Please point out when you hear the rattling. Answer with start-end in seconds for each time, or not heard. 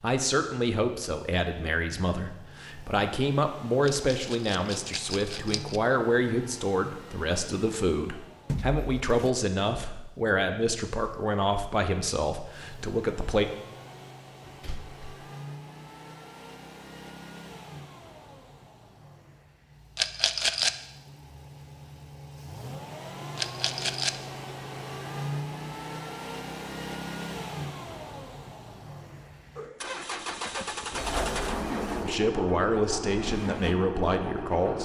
3.9-5.8, 19.9-20.8, 23.4-24.1.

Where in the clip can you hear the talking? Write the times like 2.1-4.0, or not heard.
0.0-13.4, 32.0-34.8.